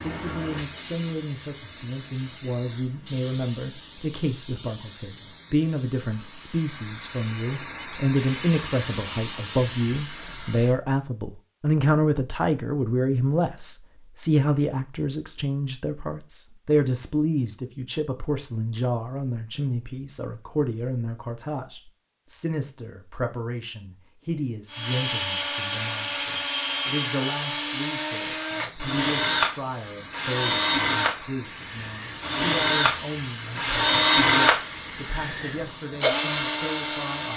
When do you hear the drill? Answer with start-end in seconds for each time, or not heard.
24.7-37.3.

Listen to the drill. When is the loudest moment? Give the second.
34 s.